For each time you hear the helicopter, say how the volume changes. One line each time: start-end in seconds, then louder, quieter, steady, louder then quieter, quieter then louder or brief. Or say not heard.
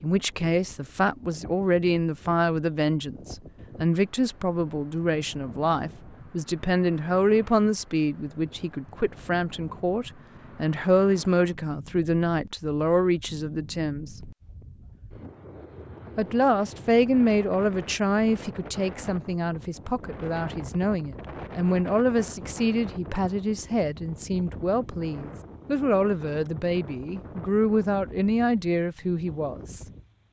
not heard.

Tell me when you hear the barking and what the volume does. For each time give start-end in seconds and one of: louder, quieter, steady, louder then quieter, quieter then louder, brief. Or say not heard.
not heard.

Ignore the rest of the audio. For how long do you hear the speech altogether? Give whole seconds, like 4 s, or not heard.
28 s.